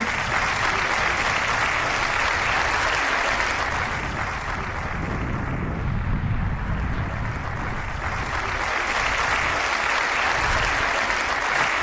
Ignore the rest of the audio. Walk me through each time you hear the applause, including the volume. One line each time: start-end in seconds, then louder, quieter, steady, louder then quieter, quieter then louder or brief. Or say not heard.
0.0-11.7 quieter then louder.